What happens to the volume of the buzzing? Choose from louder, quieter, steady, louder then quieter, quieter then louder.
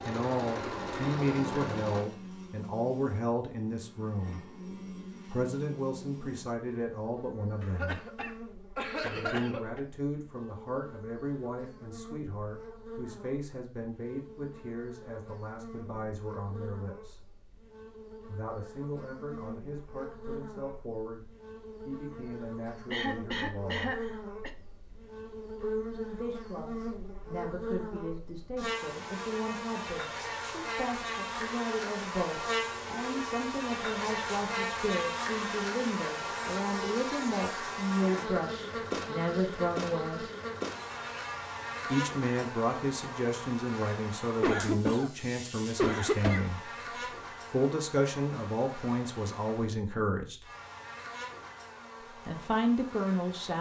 louder then quieter.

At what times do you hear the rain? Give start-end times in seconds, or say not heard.
not heard.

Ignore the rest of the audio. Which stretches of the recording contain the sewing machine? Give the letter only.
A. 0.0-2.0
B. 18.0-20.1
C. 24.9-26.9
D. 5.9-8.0
A.